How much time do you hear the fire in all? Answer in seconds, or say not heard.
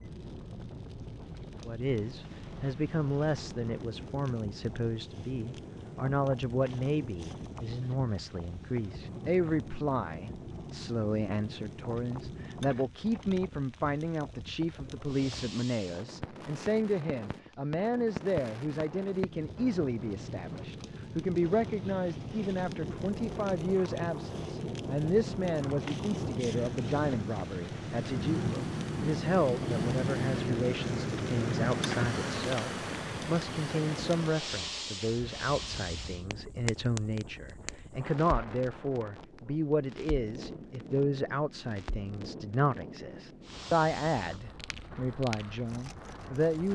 47 s.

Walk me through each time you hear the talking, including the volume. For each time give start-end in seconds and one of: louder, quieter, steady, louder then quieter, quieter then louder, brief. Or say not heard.
1.6-46.7 steady.